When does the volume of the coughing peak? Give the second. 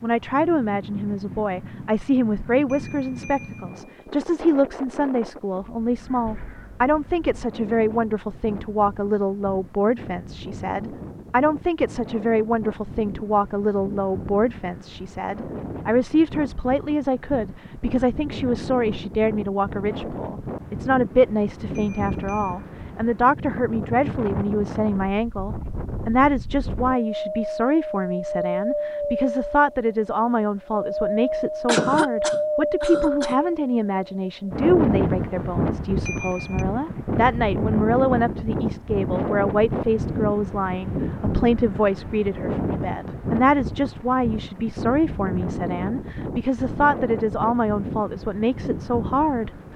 32 s.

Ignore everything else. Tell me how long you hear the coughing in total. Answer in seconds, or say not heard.
2 s.